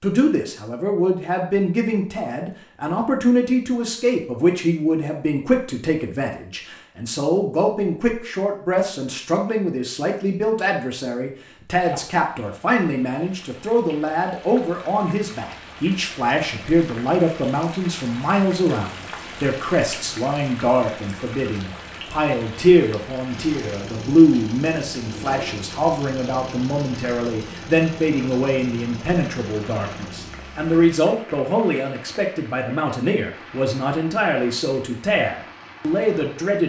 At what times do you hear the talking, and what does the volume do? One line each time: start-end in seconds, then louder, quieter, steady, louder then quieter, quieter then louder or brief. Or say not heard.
0.0-36.6 steady.